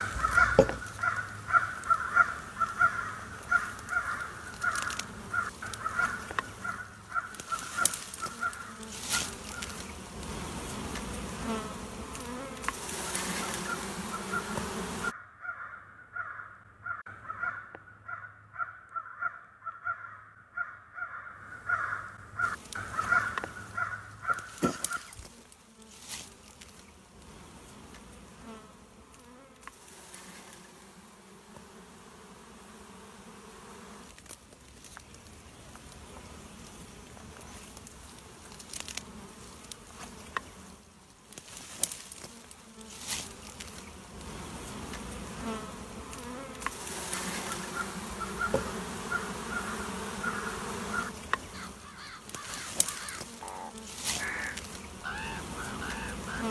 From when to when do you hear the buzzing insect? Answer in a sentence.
The buzzing insect can be heard from 0.0 to 15.2 s and from 22.4 to 56.4 s.